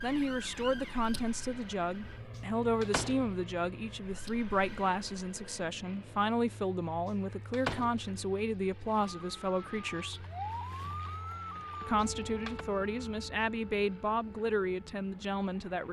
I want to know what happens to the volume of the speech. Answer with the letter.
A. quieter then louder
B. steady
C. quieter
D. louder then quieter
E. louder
B.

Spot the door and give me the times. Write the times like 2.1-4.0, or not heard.
2.4-3.2, 7.0-8.1, 11.6-12.7.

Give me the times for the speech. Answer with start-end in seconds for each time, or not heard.
0.0-10.2, 11.8-15.8.